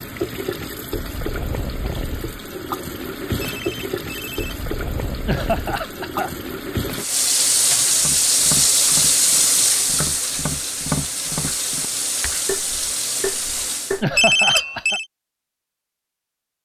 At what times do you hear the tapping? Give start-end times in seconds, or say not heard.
8.0-14.8.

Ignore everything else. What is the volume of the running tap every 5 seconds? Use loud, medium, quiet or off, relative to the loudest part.
medium, loud, medium, off.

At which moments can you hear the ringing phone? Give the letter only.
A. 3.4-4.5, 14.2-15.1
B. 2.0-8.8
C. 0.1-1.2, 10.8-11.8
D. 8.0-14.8
A.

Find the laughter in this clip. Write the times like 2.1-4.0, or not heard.
5.2-6.3, 14.0-15.0.